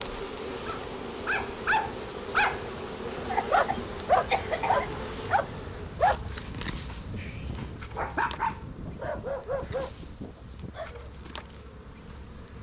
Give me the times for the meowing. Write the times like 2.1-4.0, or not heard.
not heard.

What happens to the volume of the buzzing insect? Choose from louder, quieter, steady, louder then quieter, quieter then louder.
quieter.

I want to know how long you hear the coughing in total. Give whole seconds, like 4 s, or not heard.
2 s.